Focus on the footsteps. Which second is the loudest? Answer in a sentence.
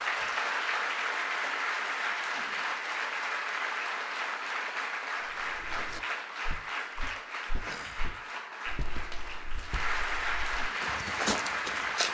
The loudest moment of the footsteps is at 11 seconds.